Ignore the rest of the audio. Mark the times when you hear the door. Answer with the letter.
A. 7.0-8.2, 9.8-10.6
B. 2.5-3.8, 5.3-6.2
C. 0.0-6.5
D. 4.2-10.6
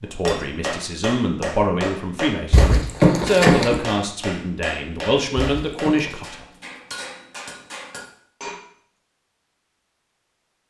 B.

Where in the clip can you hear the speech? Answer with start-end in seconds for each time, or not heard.
0.0-6.5.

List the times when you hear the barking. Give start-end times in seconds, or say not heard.
not heard.